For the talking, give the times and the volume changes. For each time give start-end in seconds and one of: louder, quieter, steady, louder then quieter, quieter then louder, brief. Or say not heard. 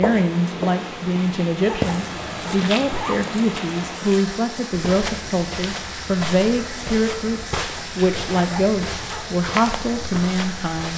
0.0-10.9 steady.